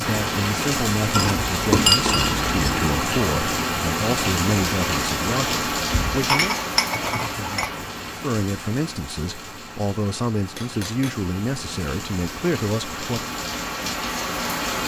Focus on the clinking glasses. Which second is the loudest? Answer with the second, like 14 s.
2 s.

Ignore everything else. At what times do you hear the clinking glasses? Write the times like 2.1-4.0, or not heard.
1.1-2.9, 5.9-7.7, 10.6-11.2.